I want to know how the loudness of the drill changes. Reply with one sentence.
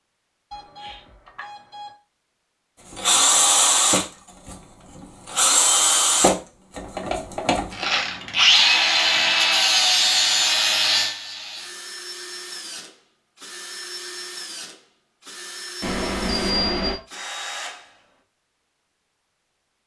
The loudness of the drill goes down.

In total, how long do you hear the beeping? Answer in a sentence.
You can hear the beeping for 3 seconds altogether.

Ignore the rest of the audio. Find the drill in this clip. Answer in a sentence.
You can hear the drill from 2.9 to 18.1 s.